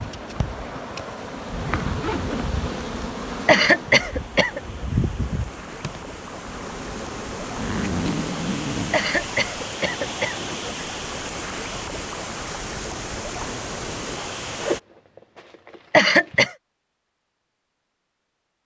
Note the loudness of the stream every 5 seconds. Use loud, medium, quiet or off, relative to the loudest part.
medium, loud, loud, off.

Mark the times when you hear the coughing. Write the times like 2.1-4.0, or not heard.
3.5-4.6, 8.9-10.4, 15.9-16.5.